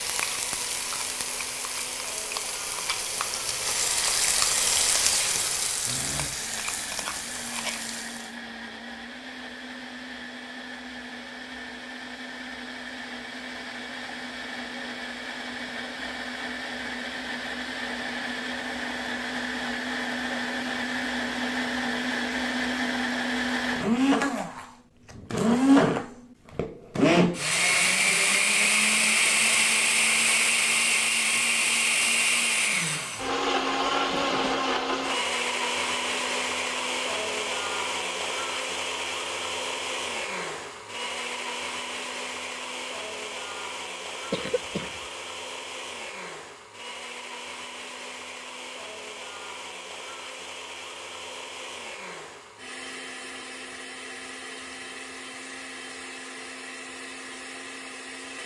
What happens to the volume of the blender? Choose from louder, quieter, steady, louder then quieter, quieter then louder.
louder then quieter.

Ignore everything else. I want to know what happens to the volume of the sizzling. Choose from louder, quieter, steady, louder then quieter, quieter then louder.
louder then quieter.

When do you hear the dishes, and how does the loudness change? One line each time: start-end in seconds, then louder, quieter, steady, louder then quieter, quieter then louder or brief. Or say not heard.
not heard.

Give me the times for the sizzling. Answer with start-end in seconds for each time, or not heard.
0.0-8.3.